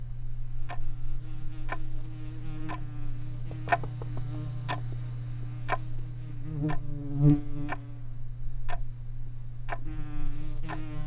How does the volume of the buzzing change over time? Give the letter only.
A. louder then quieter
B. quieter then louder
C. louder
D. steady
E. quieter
A.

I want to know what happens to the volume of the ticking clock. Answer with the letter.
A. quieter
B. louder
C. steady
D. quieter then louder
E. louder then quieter
E.